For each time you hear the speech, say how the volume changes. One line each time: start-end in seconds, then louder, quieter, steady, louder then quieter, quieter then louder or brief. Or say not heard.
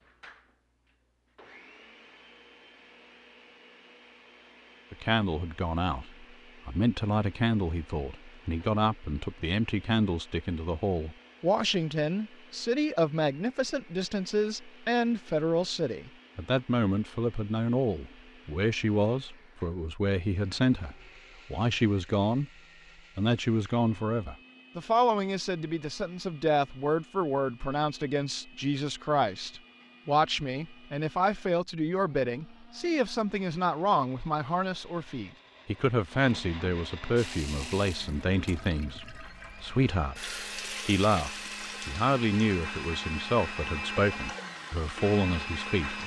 4.9-22.5 steady
23.1-46.0 steady.